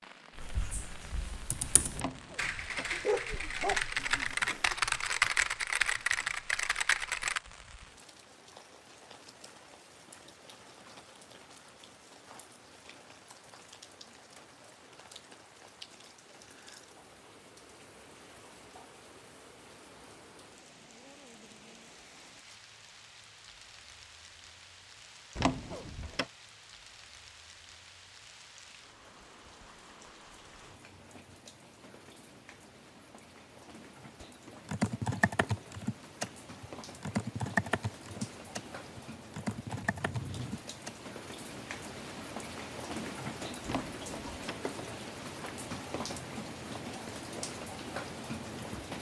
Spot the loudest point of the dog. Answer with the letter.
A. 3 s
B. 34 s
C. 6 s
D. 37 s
A.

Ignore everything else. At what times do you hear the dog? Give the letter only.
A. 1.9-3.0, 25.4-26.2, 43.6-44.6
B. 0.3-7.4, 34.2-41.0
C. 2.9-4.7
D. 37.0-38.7
C.